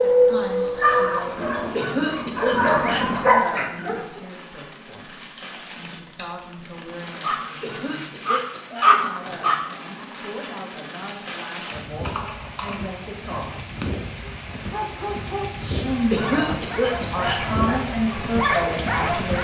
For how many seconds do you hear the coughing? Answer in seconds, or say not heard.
5 s.